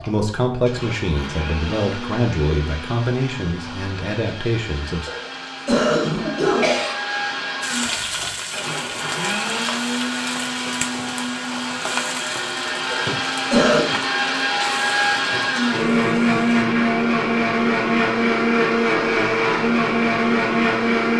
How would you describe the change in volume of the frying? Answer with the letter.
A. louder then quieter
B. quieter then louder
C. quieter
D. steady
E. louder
C.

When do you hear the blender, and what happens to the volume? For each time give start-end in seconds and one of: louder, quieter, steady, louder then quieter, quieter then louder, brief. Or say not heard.
0.0-21.1 louder.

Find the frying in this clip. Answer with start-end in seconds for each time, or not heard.
7.6-16.6.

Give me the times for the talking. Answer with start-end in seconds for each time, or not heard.
0.0-5.1.